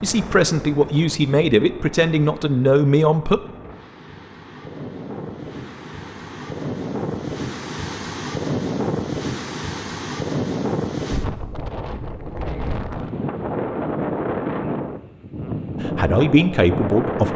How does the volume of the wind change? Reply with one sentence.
The loudness of the wind goes up.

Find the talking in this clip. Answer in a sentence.
The talking can be heard from 0.0 to 3.4 s and from 15.8 to 17.3 s.